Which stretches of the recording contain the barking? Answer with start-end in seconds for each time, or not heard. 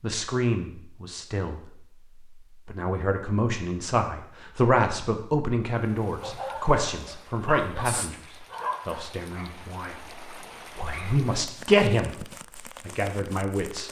6.2-11.3.